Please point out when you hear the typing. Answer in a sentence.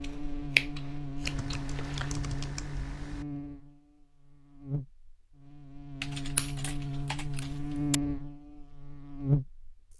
The typing can be heard from 1.2 to 3.2 s and from 6.0 to 8.0 s.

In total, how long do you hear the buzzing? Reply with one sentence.
The buzzing can be heard for 10 seconds in total.